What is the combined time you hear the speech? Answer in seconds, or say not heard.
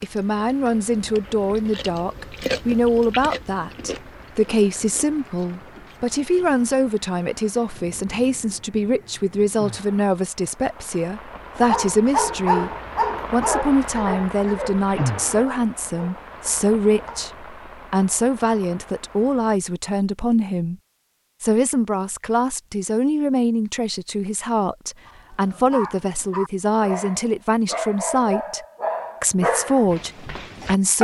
29 s.